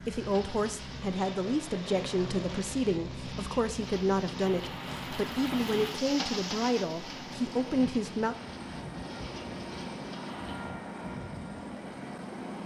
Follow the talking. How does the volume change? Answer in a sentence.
The volume of the talking stays about the same.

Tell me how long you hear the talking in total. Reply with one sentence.
The talking can be heard for 8 seconds in total.